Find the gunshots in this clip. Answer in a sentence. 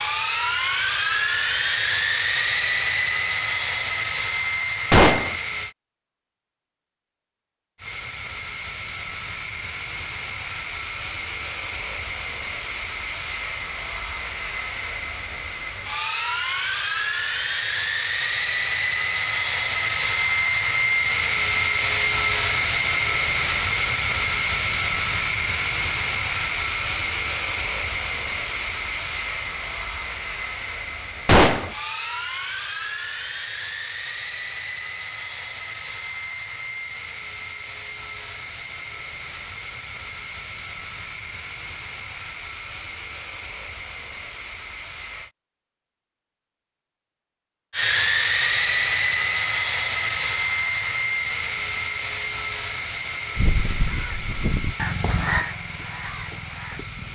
The gunshots can be heard from 4.9 to 5.3 s and from 31.2 to 31.7 s.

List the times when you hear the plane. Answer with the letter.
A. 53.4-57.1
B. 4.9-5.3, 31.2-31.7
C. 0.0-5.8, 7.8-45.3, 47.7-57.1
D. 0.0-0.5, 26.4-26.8
C.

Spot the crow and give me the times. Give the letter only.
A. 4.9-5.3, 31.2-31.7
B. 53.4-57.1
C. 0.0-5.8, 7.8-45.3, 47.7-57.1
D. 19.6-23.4
B.